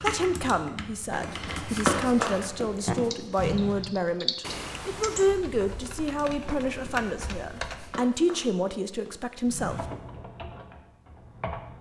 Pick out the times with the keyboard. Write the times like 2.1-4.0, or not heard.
0.0-8.0, 9.6-11.7.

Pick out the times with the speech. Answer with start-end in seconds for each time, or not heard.
0.0-9.8.